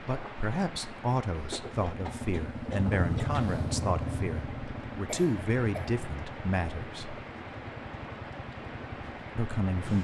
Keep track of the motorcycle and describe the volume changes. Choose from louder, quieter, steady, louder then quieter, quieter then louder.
louder then quieter.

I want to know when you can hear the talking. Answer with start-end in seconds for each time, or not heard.
0.0-7.2, 9.3-9.9.